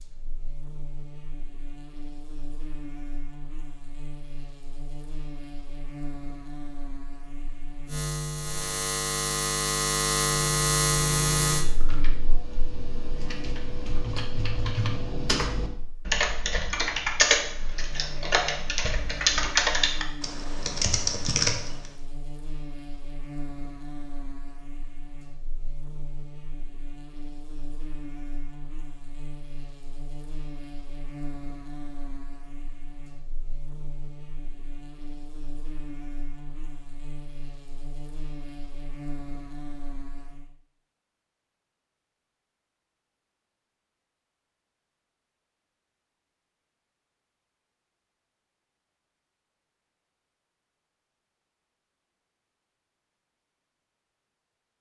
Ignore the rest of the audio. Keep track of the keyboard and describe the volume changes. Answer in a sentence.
The loudness of the keyboard goes up.